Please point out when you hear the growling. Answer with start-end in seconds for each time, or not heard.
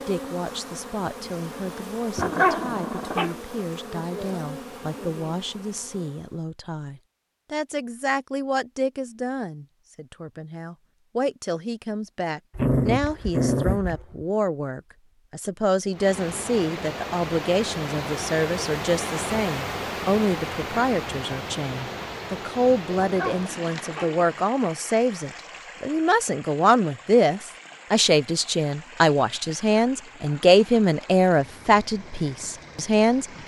2.1-3.4, 12.6-14.2, 22.9-24.2.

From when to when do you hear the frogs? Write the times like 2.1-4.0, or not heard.
not heard.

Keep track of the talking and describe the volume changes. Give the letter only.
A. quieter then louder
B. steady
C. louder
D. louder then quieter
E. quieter
C.